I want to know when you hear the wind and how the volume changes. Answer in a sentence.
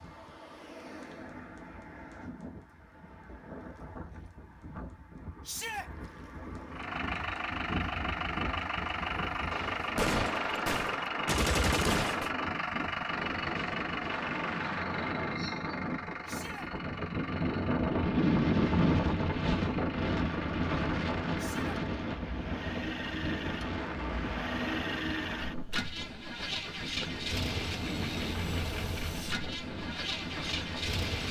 The wind can be heard from 0.0 to 31.2 s, getting louder then quieter.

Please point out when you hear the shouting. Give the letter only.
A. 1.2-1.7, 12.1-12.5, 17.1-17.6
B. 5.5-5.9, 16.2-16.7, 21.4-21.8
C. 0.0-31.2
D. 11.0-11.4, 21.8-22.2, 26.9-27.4
B.